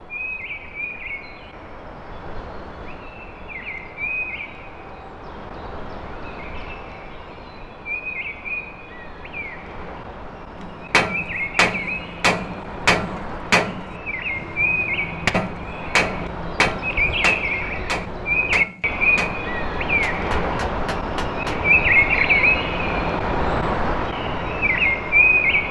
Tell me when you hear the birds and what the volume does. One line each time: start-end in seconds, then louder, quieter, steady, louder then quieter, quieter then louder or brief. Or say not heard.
0.0-25.6 louder.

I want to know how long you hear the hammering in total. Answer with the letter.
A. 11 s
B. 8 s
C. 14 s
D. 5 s
A.